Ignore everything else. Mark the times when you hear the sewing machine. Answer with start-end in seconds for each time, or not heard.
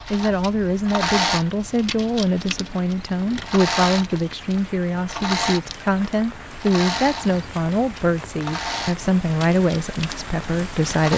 0.0-11.1.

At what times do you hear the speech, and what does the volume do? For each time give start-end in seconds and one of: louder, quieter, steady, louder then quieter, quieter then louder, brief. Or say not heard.
0.1-11.1 steady.